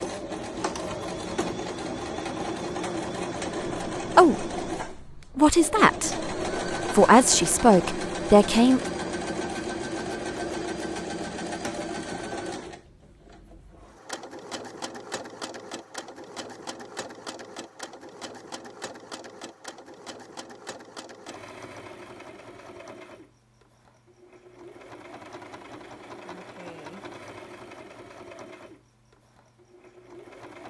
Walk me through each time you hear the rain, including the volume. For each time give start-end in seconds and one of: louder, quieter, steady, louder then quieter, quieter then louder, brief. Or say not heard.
not heard.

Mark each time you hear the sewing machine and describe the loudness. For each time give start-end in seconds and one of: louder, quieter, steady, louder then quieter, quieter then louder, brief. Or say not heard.
0.0-30.6 quieter.